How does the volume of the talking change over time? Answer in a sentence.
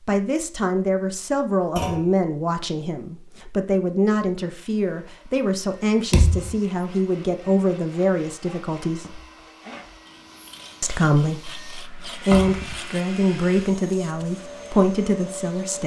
The loudness of the talking stays about the same.